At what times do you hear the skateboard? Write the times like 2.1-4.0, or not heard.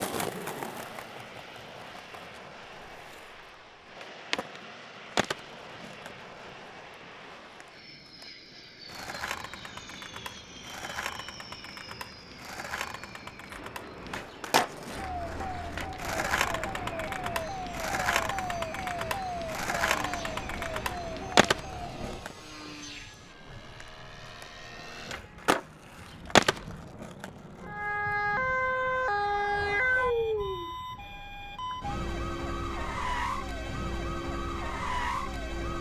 0.0-27.9.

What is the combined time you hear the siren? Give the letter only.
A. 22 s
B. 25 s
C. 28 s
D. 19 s
D.